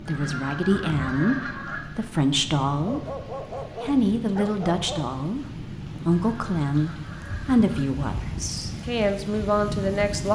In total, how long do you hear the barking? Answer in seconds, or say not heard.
2 s.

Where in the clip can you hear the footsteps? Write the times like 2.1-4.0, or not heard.
not heard.